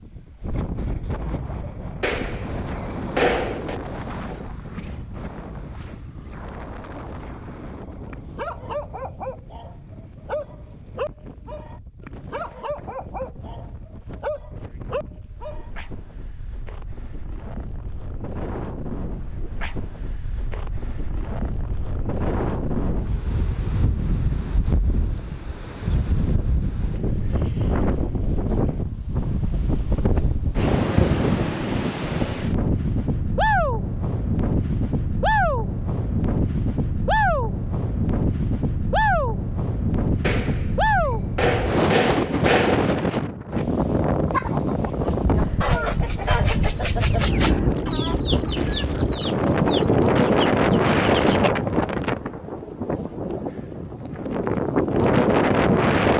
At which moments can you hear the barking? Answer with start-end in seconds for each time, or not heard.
8.1-15.7.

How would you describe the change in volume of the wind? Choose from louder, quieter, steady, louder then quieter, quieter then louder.
louder.